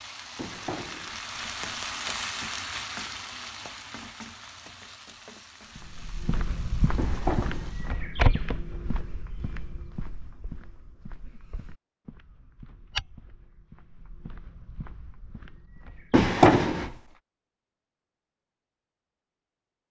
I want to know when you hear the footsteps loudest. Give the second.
8 s.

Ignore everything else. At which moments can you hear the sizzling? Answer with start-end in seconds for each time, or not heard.
0.0-8.1.